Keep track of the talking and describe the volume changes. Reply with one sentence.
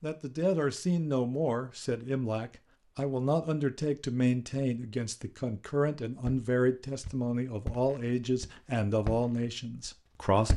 The loudness of the talking stays about the same.